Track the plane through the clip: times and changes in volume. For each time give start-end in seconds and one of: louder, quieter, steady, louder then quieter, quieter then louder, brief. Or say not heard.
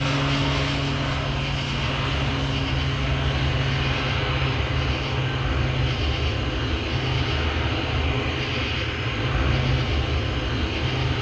0.0-11.1 steady.